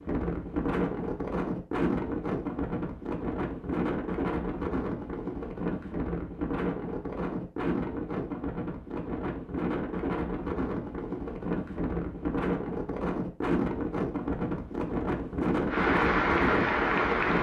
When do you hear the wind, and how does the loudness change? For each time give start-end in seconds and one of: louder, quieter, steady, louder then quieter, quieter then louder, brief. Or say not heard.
0.0-17.3 steady.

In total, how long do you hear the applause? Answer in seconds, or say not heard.
2 s.